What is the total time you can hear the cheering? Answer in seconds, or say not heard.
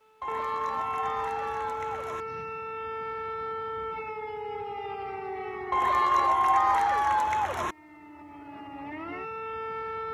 4 s.